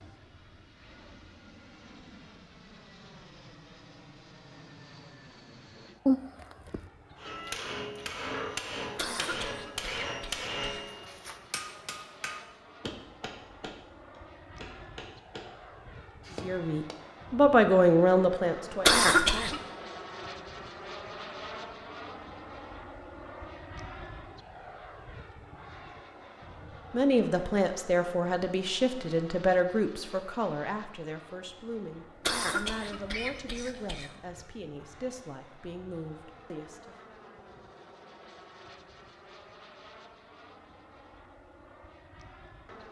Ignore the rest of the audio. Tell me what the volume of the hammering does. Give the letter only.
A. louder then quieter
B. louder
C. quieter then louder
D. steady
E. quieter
E.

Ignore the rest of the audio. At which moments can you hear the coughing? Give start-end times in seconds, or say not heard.
8.9-10.8, 18.9-19.6, 32.2-34.1.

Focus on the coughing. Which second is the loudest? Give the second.
19 s.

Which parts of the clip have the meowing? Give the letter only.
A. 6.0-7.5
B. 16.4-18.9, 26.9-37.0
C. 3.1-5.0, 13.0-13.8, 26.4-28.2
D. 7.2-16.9
A.